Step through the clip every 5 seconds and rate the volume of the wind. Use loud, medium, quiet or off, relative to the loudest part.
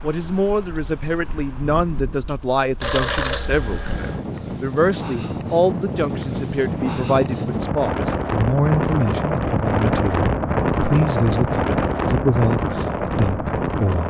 quiet, loud, loud.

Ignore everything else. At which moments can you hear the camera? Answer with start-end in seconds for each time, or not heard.
2.8-4.2.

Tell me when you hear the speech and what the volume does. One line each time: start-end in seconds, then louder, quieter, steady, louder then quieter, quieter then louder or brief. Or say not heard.
0.0-14.0 steady.